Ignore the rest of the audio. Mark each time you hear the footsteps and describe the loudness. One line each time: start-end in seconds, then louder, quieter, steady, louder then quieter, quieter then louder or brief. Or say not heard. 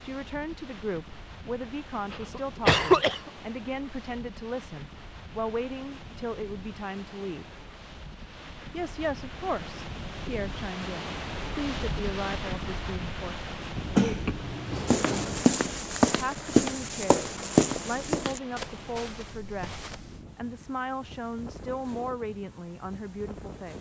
14.8-20.2 quieter.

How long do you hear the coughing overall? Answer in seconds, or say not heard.
3 s.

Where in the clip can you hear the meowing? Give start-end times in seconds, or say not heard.
not heard.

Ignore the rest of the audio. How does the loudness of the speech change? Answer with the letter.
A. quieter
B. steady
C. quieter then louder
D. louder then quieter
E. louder
B.